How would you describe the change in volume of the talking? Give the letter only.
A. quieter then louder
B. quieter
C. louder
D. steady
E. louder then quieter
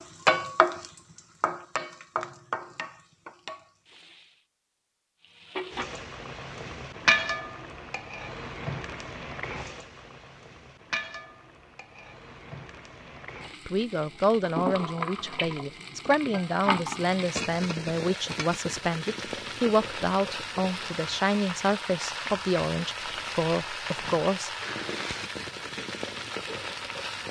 D.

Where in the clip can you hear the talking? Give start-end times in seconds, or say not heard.
13.7-24.5.